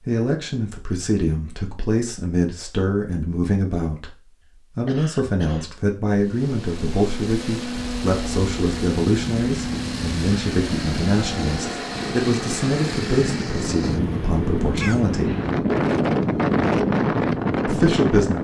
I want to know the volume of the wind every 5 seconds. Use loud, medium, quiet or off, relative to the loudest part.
off, quiet, medium, loud.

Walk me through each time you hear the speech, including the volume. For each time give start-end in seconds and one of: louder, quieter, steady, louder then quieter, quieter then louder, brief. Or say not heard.
0.0-15.3 steady
17.6-18.3 brief.